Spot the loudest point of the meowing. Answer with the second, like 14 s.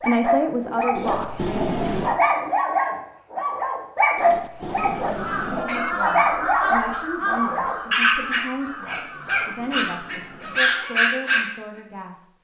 2 s.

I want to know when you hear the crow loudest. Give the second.
7 s.